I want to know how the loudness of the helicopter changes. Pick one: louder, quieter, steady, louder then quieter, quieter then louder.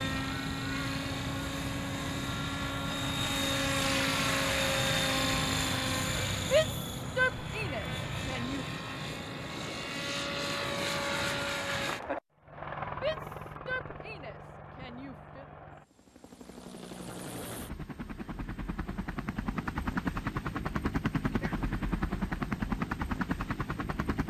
quieter then louder.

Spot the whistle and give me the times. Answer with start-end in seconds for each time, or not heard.
not heard.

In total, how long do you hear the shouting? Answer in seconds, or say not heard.
5 s.